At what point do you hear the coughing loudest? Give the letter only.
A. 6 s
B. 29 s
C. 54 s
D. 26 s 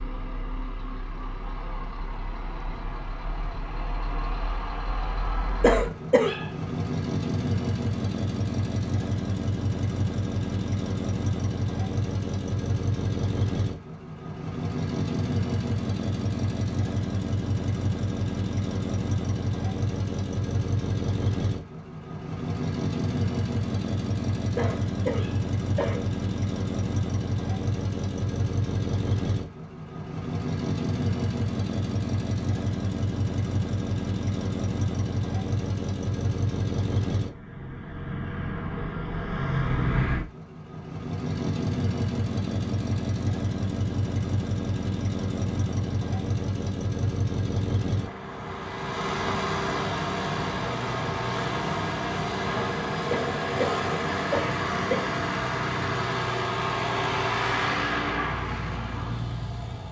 A.